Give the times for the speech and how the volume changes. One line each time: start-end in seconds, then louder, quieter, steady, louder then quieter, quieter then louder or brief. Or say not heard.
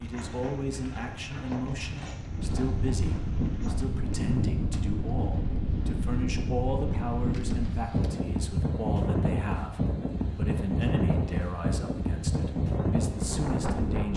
0.0-14.1 steady.